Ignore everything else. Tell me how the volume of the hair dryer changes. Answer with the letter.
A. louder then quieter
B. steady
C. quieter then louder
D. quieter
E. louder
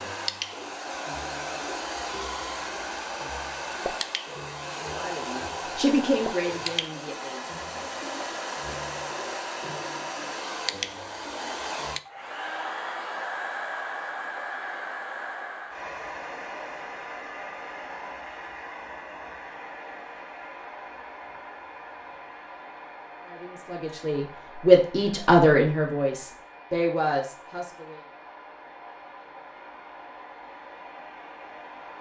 D.